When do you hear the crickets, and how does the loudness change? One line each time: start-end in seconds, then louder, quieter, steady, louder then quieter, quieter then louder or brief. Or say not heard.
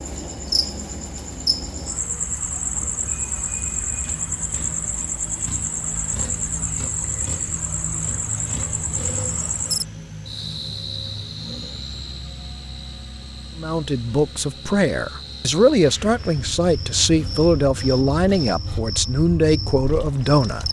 0.0-20.6 quieter then louder.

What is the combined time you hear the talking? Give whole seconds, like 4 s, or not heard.
7 s.